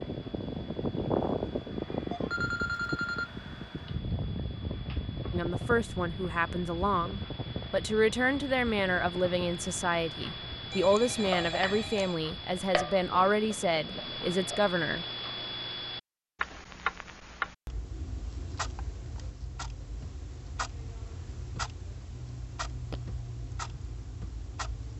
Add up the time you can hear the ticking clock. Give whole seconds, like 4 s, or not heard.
25 s.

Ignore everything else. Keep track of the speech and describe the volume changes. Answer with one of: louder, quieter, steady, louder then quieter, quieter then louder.
steady.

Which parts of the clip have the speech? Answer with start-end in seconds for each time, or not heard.
5.3-15.1.